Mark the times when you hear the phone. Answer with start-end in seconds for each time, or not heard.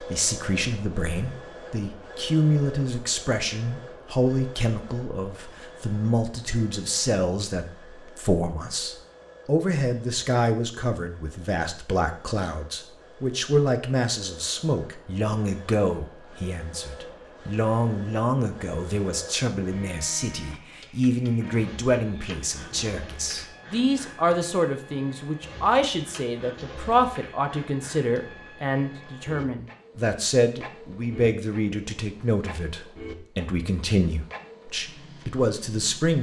not heard.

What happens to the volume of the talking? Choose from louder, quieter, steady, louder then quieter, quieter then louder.
steady.